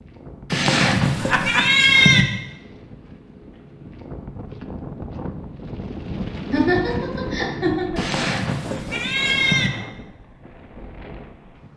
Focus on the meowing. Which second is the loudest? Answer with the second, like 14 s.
2 s.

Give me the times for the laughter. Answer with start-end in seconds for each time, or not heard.
1.2-1.7, 6.5-8.1.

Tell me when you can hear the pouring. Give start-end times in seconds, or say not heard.
not heard.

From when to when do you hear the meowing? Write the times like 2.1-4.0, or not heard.
0.5-2.2, 8.0-9.7.